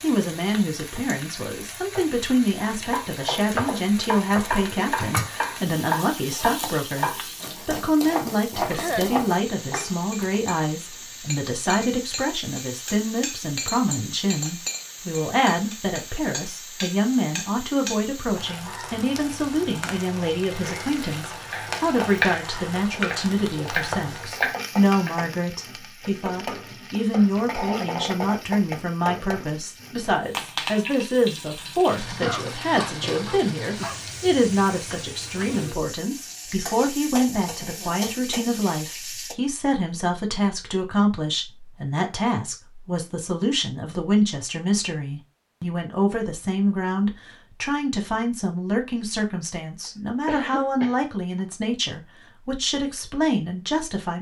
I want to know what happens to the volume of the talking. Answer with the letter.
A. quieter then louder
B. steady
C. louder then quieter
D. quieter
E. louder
B.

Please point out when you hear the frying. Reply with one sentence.
The frying can be heard from 0.0 to 39.4 s.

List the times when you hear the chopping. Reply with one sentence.
The chopping can be heard from 2.6 to 10.4 s and from 21.5 to 25.2 s.